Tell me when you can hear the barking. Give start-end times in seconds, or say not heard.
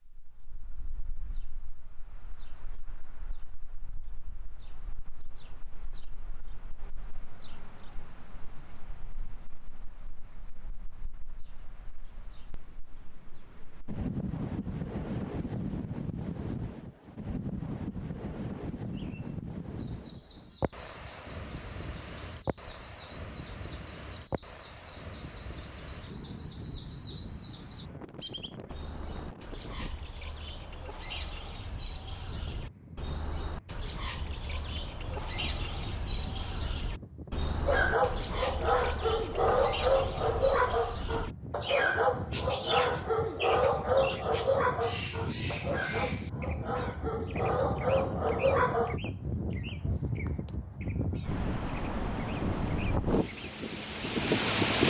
37.6-49.0.